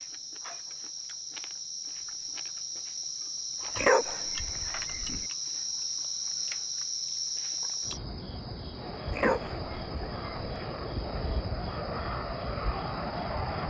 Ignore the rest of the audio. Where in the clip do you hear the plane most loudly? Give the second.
13 s.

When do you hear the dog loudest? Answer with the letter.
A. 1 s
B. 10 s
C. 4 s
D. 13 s
C.